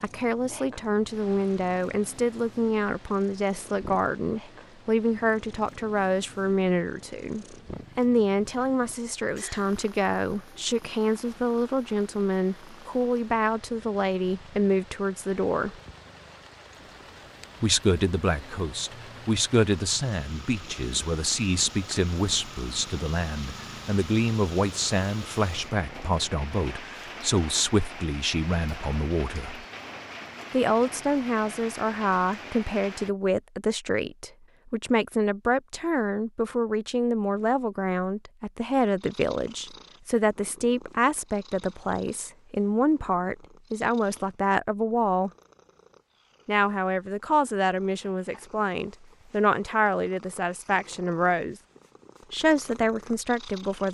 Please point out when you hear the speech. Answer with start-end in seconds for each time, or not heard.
0.0-15.8, 17.6-29.6, 30.5-45.3, 46.5-51.5, 52.3-53.8.